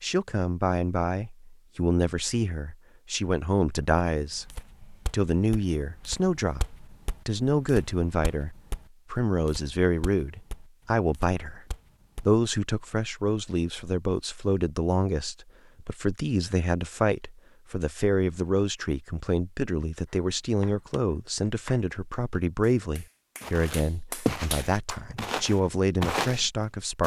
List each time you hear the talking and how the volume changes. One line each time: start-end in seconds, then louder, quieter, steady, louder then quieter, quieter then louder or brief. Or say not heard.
0.0-11.6 steady
12.2-27.0 steady.